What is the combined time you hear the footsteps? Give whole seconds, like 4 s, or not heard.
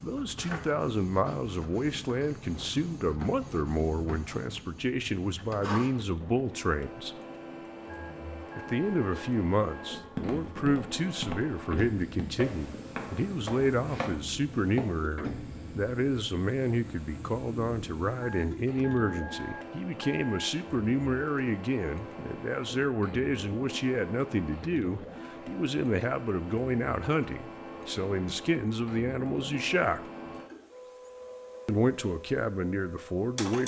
5 s.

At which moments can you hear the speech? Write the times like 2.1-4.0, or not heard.
0.0-7.2, 8.6-30.0, 31.6-33.6.